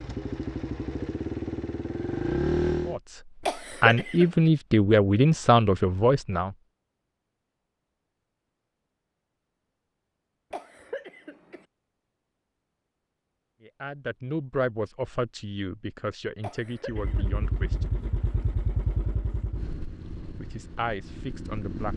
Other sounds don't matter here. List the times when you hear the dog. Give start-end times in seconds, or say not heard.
not heard.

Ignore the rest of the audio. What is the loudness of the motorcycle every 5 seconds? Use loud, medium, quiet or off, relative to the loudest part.
loud, off, off, medium, medium.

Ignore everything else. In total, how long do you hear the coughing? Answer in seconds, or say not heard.
3 s.